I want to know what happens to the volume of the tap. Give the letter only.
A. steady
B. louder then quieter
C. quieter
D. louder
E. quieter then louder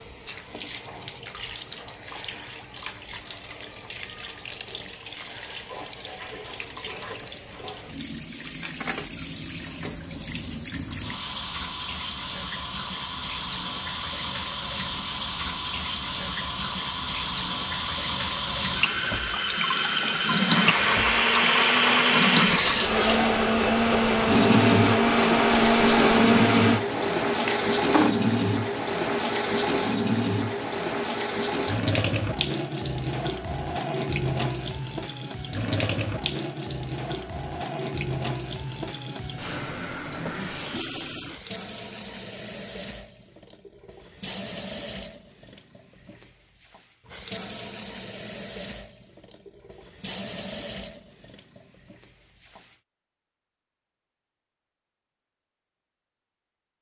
B.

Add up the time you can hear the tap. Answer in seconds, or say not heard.
53 s.